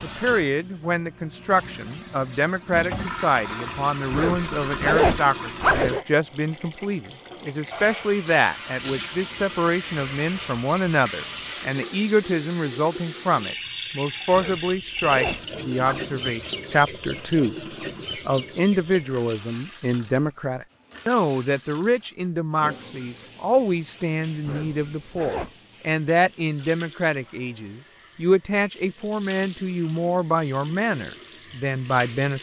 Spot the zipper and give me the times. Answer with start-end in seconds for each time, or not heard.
4.1-6.0, 14.3-16.1, 24.4-25.5.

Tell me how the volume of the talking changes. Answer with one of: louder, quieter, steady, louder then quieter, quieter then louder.
steady.